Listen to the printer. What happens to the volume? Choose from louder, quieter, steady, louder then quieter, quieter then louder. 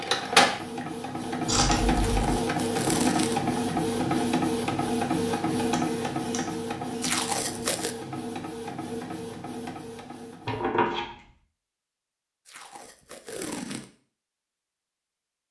quieter.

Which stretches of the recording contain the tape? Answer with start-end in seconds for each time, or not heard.
1.9-3.4, 7.0-8.0, 12.4-13.9.